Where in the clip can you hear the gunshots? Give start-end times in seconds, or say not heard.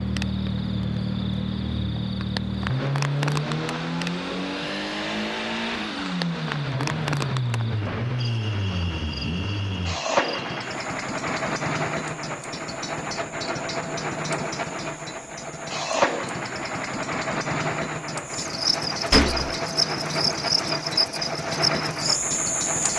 19.1-19.6.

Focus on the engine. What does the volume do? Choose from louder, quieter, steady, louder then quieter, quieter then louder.
steady.